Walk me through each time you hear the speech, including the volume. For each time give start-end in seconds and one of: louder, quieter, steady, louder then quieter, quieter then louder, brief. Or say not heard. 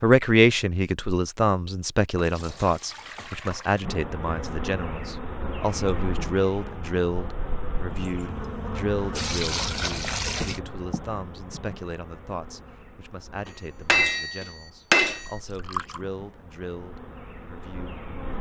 0.0-18.3 quieter.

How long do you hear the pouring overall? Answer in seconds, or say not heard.
5 s.